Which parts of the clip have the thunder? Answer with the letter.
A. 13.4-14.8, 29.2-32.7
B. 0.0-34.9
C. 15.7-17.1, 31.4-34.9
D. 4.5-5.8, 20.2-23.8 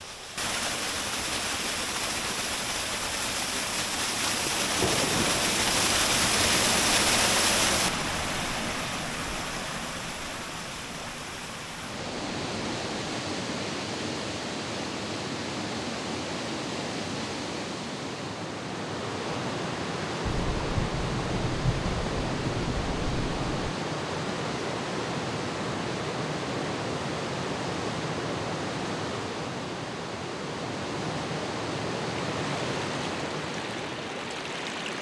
D.